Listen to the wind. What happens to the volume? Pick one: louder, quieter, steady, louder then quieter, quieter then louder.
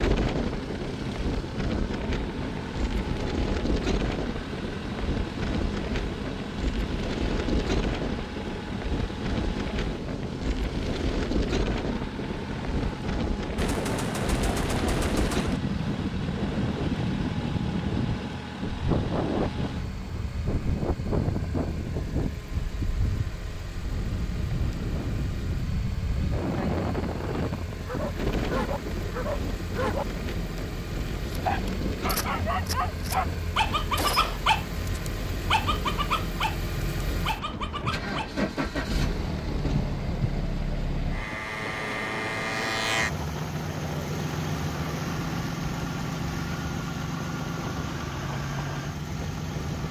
quieter.